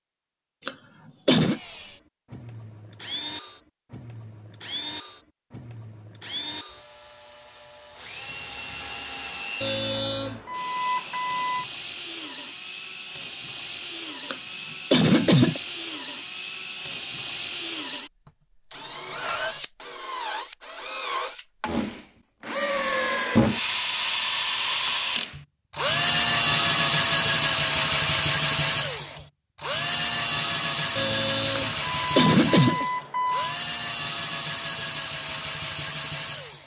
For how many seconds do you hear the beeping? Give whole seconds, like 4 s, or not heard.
5 s.